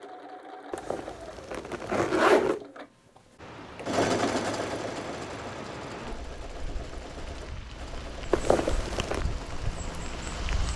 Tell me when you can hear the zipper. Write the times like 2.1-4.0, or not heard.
0.7-2.6, 8.3-9.2.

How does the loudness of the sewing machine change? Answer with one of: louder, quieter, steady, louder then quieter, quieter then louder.
louder then quieter.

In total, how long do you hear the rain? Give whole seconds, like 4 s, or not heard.
7 s.